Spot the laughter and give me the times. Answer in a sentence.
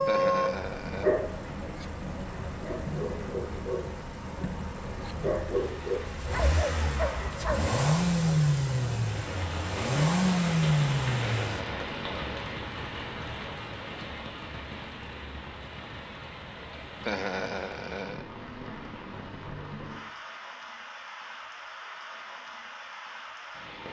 The laughter can be heard from 0.1 to 1.1 s, from 11.2 to 12.3 s and from 17.0 to 18.2 s.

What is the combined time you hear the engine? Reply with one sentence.
You can hear the engine for 12 seconds altogether.